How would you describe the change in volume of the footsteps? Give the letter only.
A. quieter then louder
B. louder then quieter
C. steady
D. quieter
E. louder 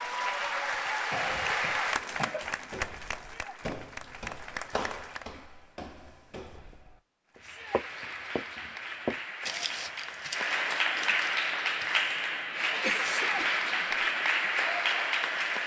B.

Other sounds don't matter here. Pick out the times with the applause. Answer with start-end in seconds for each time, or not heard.
0.0-5.2, 7.3-15.6.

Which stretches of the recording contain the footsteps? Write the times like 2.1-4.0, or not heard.
2.4-12.1.